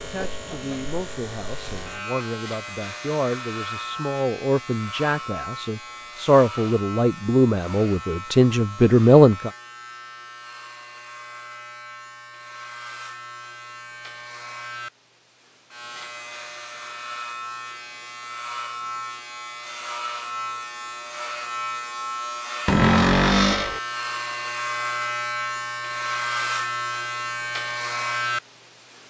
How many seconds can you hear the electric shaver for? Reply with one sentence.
You can hear the electric shaver for 29 seconds altogether.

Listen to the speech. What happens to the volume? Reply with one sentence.
The volume of the speech goes up.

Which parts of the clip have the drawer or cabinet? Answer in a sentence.
You can hear the drawer or cabinet from 22.6 to 23.8 s.